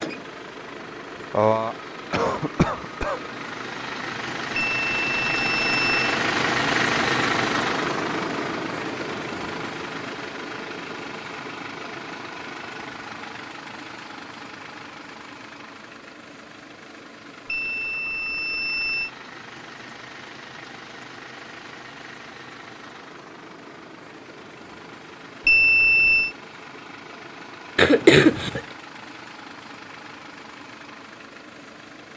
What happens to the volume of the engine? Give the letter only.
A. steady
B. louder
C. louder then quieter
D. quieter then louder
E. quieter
E.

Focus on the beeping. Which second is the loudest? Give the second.
26 s.